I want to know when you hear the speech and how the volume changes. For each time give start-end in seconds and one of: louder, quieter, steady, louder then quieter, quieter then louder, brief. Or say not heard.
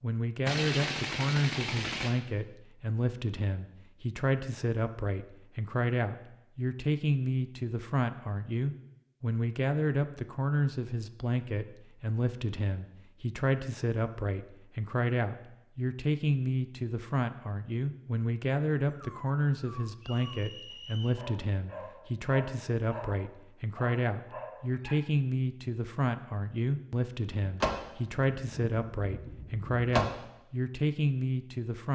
0.0-31.8 steady.